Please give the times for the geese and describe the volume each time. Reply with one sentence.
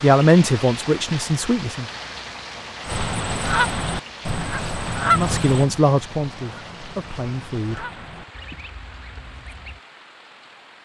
You can hear the geese from 2.9 to 9.8 s, getting quieter.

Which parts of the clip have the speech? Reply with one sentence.
The speech can be heard from 0.0 to 1.9 s and from 5.2 to 7.8 s.